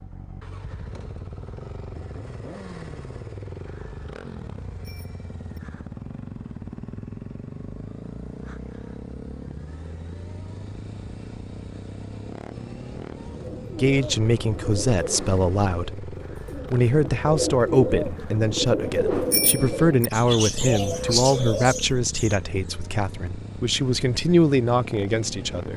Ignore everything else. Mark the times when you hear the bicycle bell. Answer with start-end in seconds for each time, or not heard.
4.8-5.6, 19.3-20.1.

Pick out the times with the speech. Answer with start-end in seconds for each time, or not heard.
13.8-25.7.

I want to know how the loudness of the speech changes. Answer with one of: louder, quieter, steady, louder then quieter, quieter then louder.
steady.